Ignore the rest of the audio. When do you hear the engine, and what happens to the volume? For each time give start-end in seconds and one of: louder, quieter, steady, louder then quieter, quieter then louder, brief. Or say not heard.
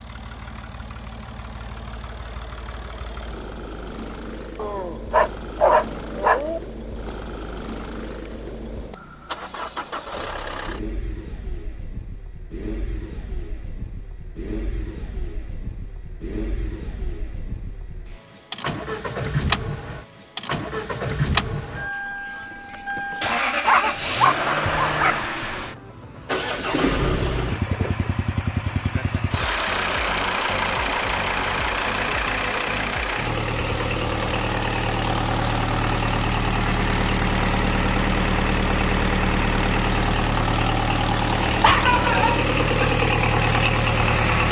0.0-44.4 louder.